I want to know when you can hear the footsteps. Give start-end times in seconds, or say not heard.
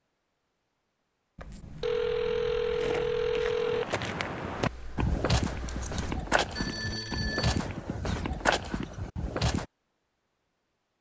2.6-9.7.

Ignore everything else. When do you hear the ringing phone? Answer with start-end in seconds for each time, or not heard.
1.4-4.0, 6.5-7.7.